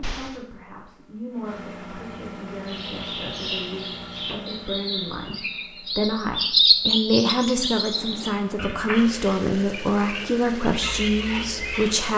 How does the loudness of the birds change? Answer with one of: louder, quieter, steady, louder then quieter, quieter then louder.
louder then quieter.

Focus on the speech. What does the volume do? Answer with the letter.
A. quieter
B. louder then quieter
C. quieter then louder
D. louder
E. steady
D.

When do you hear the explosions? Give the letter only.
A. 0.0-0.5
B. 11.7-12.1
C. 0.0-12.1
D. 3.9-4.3
A.